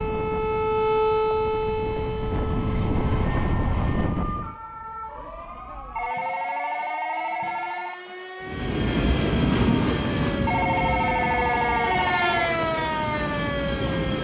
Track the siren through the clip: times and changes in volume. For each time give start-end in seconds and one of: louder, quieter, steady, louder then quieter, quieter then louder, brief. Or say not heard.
0.0-14.2 quieter then louder.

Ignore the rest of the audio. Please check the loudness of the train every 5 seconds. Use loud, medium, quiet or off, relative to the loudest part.
medium, loud, medium.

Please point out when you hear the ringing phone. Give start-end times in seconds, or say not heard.
0.8-2.5, 6.0-8.0, 10.4-12.3.